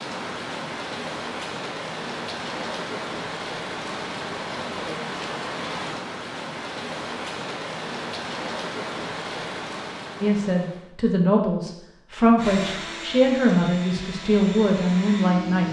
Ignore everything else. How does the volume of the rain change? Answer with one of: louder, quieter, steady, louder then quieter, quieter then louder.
steady.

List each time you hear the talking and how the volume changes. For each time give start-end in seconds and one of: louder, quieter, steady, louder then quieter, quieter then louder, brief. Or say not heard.
10.2-15.6 steady.